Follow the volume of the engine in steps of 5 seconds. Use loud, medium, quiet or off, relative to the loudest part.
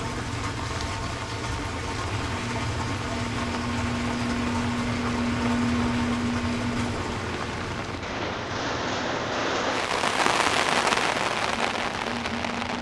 loud, loud, medium.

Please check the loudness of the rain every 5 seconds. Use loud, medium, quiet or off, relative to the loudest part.
quiet, medium, loud.